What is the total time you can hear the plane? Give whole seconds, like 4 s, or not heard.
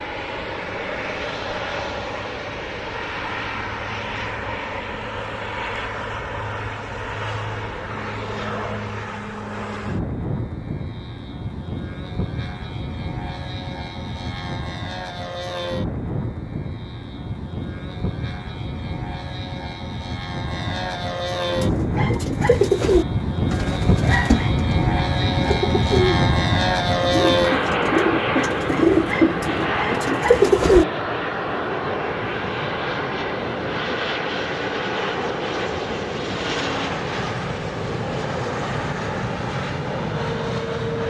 41 s.